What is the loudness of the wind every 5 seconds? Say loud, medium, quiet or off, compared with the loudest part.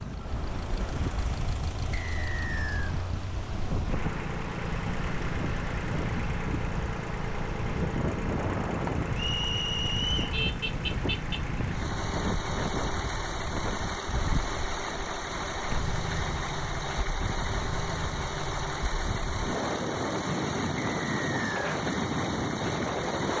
medium, loud, medium, medium, loud.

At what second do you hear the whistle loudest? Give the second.
10 s.